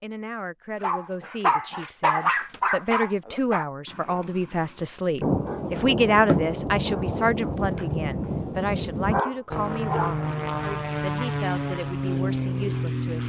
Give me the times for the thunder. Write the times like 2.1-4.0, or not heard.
5.2-9.2.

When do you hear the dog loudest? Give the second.
2 s.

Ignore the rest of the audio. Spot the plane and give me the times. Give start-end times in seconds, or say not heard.
9.5-13.2.